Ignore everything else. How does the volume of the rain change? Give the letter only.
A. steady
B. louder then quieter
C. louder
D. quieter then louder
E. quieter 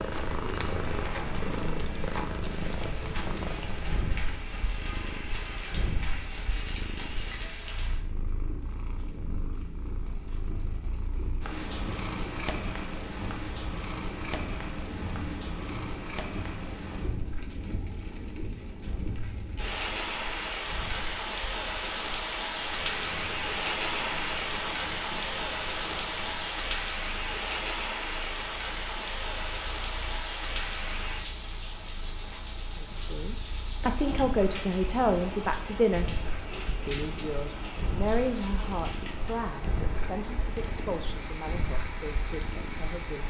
B.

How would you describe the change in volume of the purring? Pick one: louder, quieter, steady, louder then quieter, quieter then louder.
quieter then louder.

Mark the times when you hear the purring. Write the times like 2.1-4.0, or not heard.
0.0-43.2.